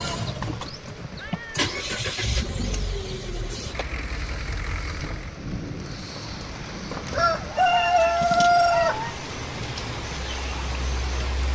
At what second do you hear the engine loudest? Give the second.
2 s.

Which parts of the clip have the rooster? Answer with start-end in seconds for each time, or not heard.
6.2-9.0.